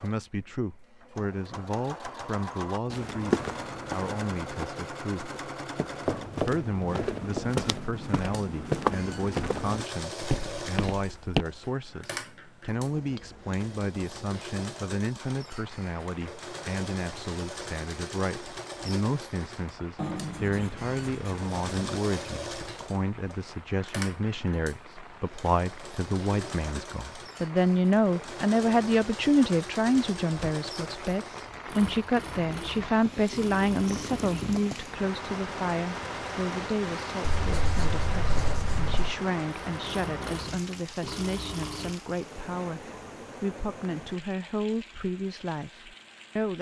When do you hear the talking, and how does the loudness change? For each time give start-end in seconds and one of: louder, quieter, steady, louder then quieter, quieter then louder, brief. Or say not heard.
0.0-5.3 steady
6.3-46.5 louder then quieter.